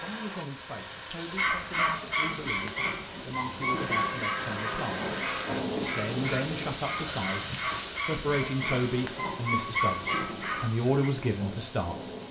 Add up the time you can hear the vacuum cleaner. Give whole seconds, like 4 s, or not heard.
4 s.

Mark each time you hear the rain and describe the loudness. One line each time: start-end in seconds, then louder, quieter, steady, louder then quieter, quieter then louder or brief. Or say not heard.
0.0-12.2 louder then quieter.